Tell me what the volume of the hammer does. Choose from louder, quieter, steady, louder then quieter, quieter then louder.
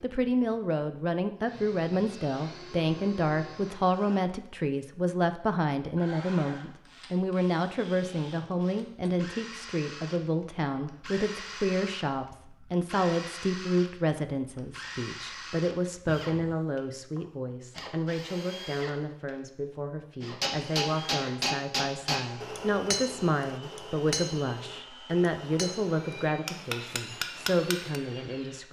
quieter then louder.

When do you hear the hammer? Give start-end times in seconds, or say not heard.
20.4-28.0.